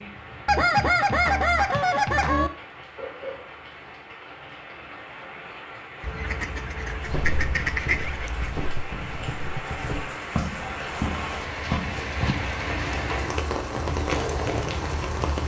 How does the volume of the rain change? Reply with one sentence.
The volume of the rain goes up.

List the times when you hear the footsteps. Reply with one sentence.
The footsteps can be heard from 7.0 to 15.4 s.